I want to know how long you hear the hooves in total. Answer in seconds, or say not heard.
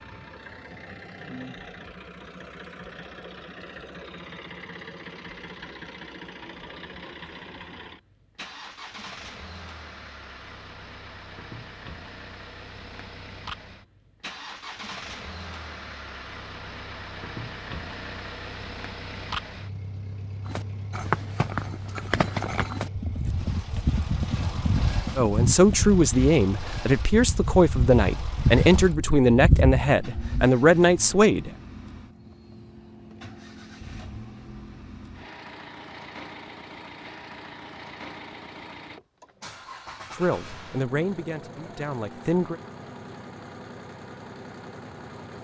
10 s.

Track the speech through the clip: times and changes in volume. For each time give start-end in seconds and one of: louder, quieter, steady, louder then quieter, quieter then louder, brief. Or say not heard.
25.1-31.5 steady
40.1-42.6 brief.